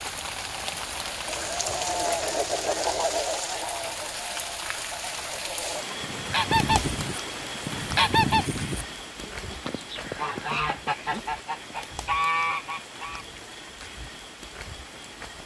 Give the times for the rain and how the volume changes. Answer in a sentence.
The rain can be heard from 0.0 to 15.4 s, getting quieter.